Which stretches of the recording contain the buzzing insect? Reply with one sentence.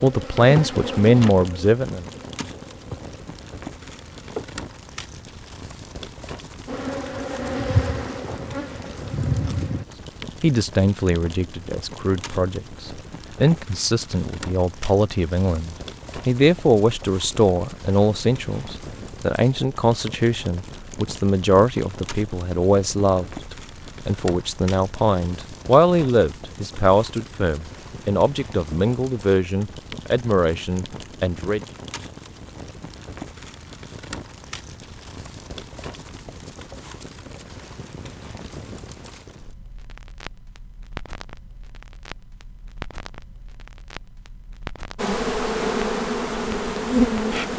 The buzzing insect can be heard from 0.0 to 4.6 s, from 6.7 to 9.8 s and from 45.0 to 47.5 s.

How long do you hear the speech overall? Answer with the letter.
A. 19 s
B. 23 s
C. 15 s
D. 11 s
B.